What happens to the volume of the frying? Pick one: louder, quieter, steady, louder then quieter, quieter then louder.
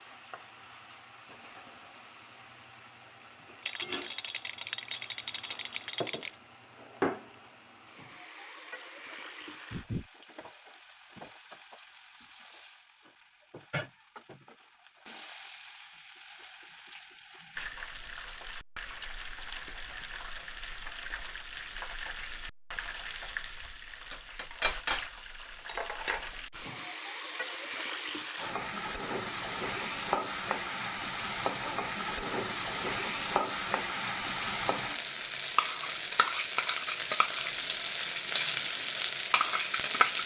louder.